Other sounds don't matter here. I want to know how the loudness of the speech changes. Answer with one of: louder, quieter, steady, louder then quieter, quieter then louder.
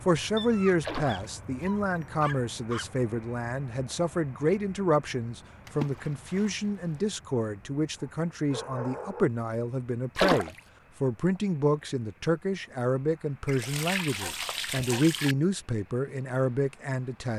steady.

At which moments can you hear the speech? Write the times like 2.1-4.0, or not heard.
0.1-17.3.